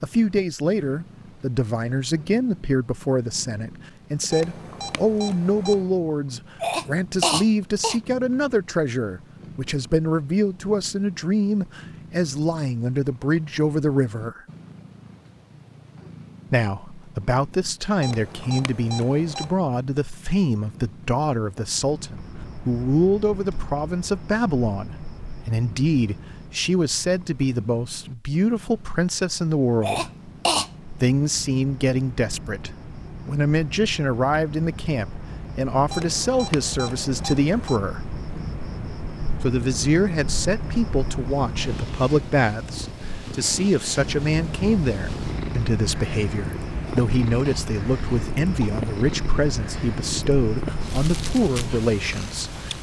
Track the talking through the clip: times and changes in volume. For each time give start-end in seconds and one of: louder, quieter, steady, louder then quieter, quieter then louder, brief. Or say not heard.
0.0-14.4 steady
16.5-30.1 steady
31.0-38.0 steady
39.4-52.5 steady.